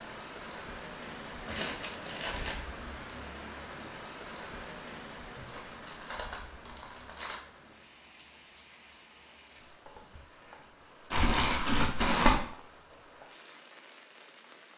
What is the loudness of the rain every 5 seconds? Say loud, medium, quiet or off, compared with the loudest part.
loud, medium, medium.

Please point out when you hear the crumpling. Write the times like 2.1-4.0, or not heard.
1.4-2.5, 5.3-7.4, 11.1-12.3.